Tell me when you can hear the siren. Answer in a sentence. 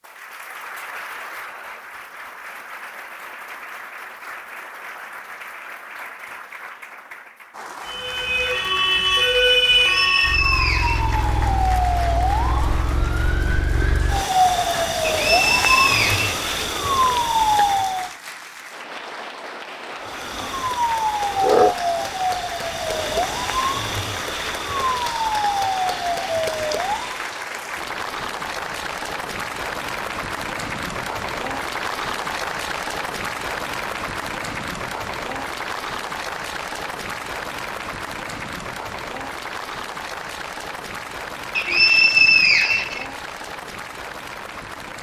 You can hear the siren from 7.8 to 18.1 s and from 20.1 to 27.3 s.